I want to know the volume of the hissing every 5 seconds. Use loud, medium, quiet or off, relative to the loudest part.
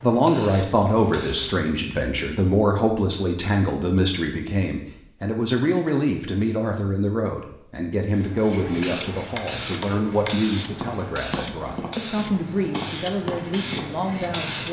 medium, loud, loud.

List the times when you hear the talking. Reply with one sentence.
You can hear the talking from 0.0 to 14.6 s.